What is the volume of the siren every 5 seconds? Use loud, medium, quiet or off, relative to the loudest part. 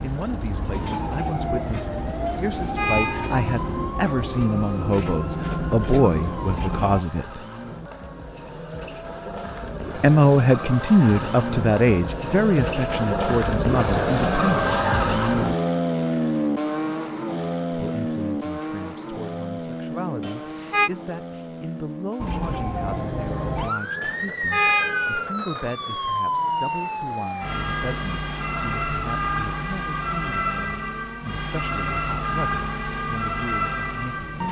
loud, loud, off, off, loud, loud, loud.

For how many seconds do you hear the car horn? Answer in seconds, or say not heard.
3 s.